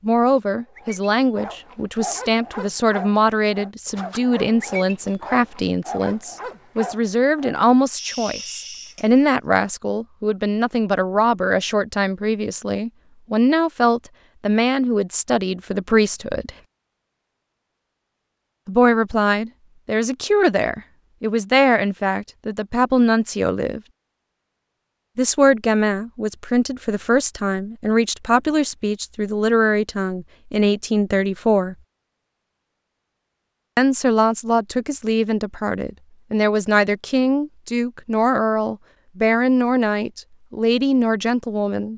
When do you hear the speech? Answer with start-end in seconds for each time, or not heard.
0.0-16.5, 18.6-23.8, 25.1-31.8, 33.8-41.9.